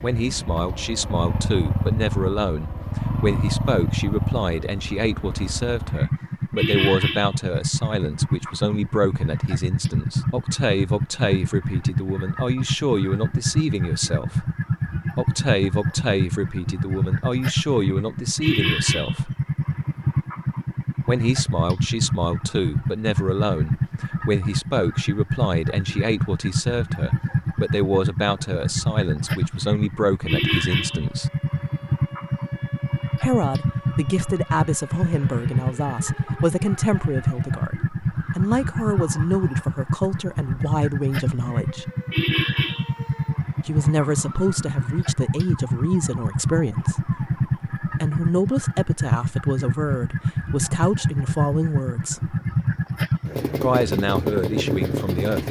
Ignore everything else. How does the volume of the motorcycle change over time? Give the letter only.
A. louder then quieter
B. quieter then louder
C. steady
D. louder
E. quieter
C.